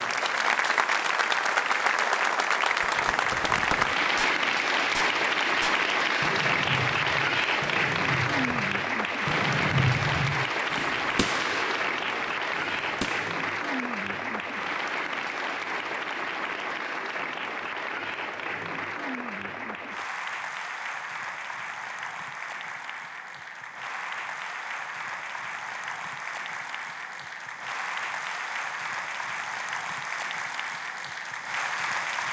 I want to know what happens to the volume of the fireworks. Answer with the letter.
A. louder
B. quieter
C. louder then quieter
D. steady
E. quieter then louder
C.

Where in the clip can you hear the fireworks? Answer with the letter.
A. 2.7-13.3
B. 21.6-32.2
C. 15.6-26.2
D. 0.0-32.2
A.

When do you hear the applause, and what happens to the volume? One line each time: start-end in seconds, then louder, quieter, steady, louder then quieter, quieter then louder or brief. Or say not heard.
0.0-32.2 quieter.